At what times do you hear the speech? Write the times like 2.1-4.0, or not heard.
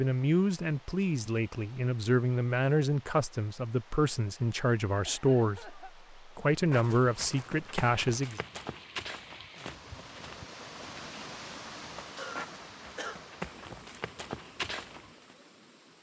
0.0-8.4.